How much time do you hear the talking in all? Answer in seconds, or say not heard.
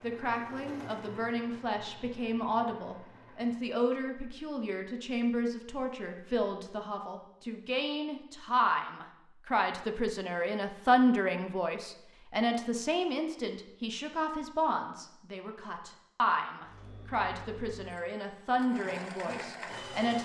20 s.